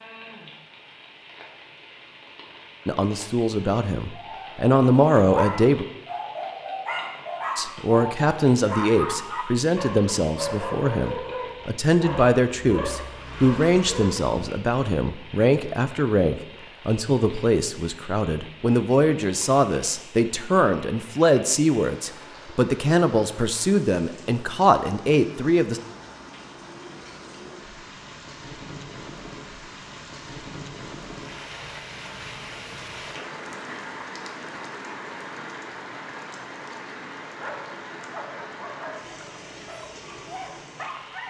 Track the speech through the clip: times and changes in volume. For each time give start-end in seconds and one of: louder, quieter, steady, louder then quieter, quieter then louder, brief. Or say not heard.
2.9-5.8 brief
7.5-25.8 steady.